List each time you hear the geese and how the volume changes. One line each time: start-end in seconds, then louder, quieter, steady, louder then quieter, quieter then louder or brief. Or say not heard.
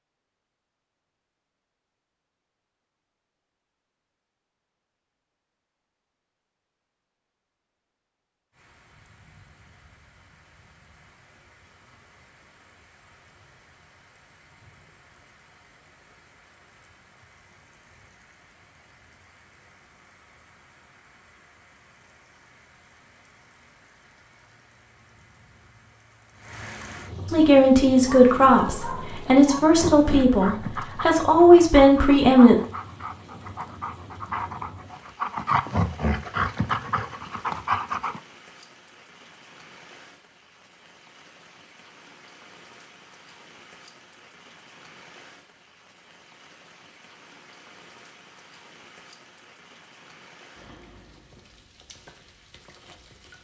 not heard.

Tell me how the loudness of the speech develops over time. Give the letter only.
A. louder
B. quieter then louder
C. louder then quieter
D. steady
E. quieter
B.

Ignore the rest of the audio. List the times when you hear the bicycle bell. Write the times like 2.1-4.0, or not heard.
not heard.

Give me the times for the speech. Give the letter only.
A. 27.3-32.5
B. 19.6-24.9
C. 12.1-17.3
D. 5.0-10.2
A.